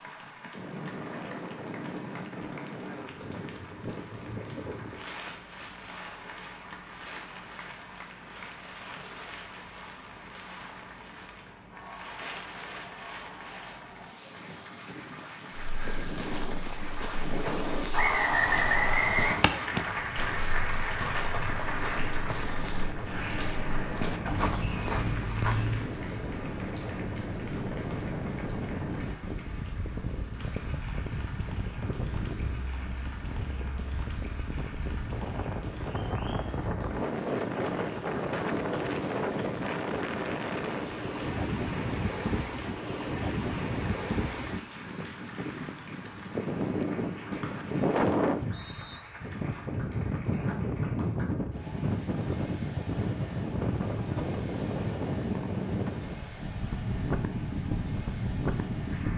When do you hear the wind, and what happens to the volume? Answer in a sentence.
You can hear the wind from 0.0 to 59.1 s, getting louder.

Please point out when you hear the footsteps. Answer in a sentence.
You can hear the footsteps from 15.6 to 25.9 s.